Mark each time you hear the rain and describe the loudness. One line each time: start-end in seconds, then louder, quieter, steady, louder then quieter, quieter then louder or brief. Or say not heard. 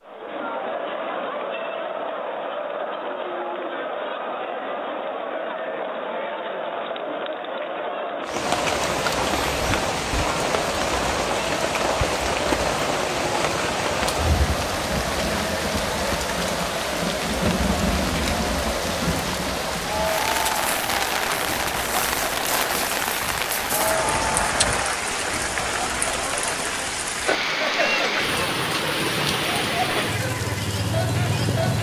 8.2-31.7 steady.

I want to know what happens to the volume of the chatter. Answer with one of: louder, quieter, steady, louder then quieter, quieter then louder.
steady.